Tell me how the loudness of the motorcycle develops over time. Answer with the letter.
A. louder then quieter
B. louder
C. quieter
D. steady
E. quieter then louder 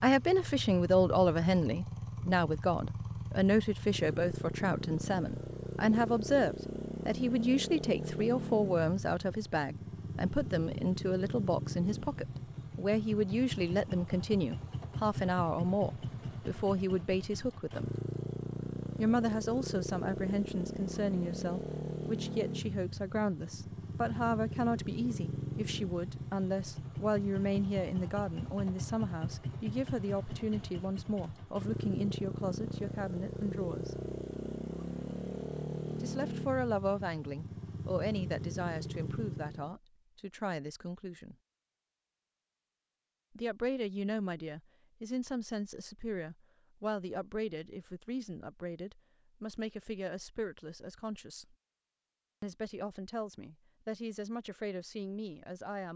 D.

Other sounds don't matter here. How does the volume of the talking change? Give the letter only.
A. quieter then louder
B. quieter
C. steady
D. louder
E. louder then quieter
B.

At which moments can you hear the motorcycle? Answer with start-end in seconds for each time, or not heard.
0.0-39.8.